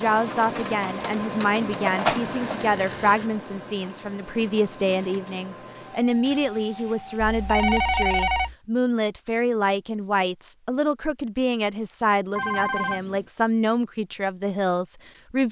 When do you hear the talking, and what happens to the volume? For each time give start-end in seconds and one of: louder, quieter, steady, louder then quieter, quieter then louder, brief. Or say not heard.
0.0-15.4 steady.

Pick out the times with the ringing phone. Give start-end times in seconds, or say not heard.
1.4-3.3, 7.2-8.6, 12.3-13.2.